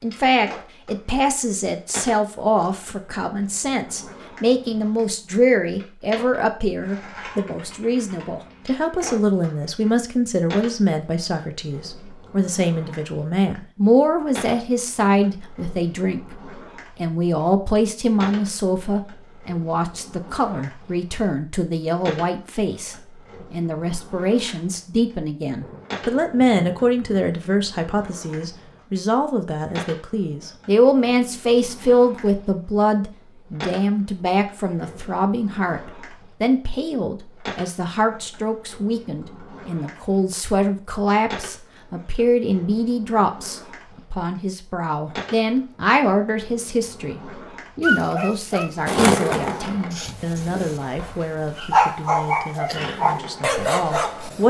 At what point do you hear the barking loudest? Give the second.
52 s.